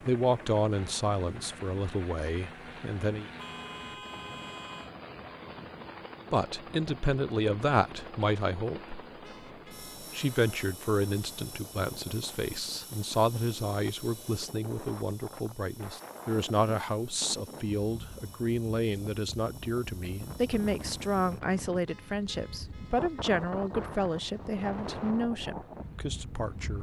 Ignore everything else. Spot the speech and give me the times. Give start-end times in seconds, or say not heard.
0.1-3.2, 6.3-9.0, 10.0-26.7.